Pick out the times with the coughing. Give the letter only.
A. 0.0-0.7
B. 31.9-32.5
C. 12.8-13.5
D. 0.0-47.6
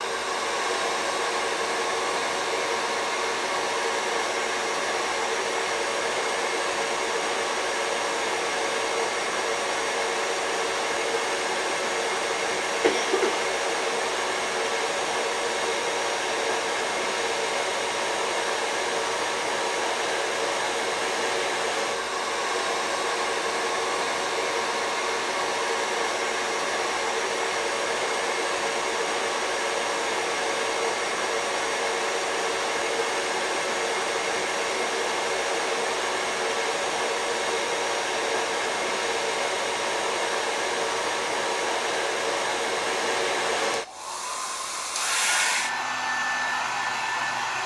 C.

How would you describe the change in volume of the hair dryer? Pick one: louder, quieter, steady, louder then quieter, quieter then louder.
steady.